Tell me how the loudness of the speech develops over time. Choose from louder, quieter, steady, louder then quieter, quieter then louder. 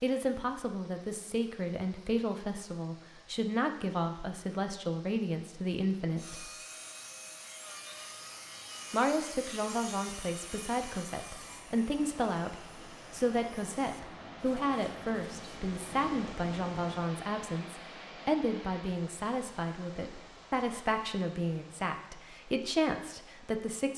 steady.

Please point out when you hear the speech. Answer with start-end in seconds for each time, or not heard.
0.0-6.5, 8.9-23.9.